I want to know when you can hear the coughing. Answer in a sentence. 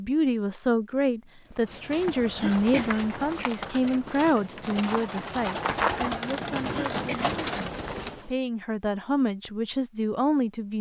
You can hear the coughing from 2.4 to 3.0 s and from 6.7 to 7.2 s.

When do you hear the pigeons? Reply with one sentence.
You can hear the pigeons from 1.4 to 8.3 s.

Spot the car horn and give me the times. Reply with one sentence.
The car horn can't be heard in this clip.